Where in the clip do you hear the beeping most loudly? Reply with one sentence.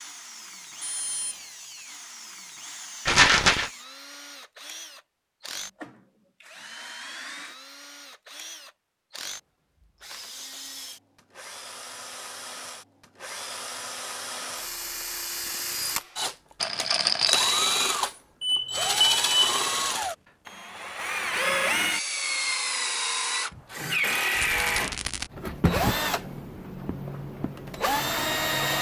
The loudest moment of the beeping is at 19 seconds.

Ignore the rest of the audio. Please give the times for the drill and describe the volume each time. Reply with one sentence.
The drill can be heard from 0.0 to 28.7 s, getting louder.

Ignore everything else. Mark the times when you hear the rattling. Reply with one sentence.
You can hear the rattling from 3.0 to 3.7 s, from 16.6 to 17.5 s and from 24.3 to 25.3 s.